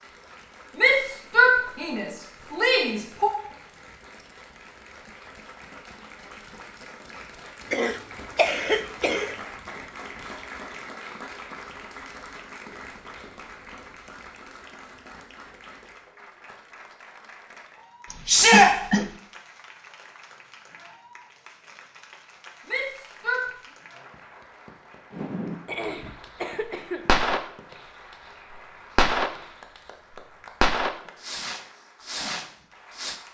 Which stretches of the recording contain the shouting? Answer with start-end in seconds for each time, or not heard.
0.8-3.3, 18.2-18.7, 22.6-23.4.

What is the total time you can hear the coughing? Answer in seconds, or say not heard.
4 s.